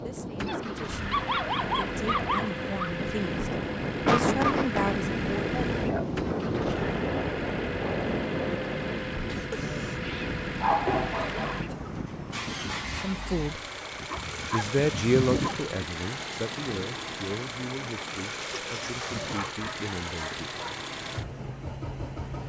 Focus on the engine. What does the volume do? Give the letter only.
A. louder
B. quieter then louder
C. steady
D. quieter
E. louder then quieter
C.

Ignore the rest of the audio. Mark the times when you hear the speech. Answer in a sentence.
The speech can be heard from 0.0 to 5.6 s, from 12.9 to 13.6 s and from 14.5 to 20.5 s.